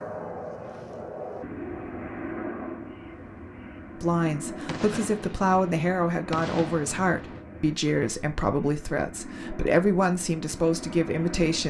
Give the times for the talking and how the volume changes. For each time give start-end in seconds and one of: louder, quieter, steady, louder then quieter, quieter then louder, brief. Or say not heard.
4.0-11.6 steady.